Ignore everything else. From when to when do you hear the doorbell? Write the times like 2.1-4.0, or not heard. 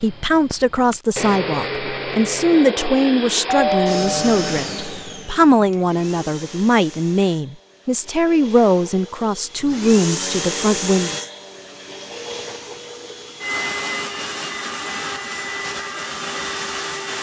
3.5-4.6.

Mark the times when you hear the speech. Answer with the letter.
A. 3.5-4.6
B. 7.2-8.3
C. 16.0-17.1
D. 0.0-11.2
D.